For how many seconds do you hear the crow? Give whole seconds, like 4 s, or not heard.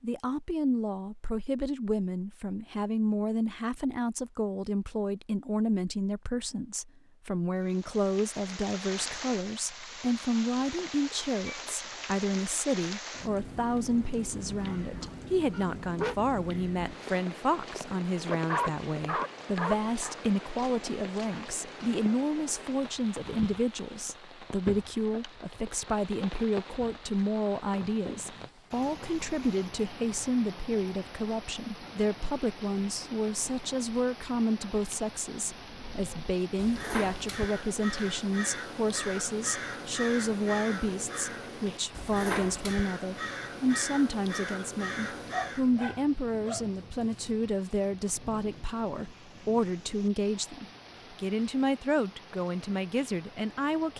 10 s.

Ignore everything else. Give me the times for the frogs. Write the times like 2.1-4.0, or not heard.
not heard.